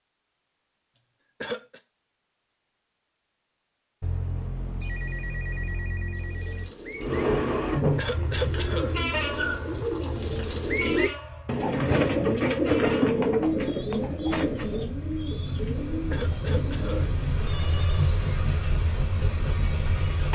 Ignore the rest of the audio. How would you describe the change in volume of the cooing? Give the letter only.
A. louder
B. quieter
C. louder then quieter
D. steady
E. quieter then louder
C.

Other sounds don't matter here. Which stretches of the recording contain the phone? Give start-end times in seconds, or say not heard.
4.0-6.7, 17.4-18.1.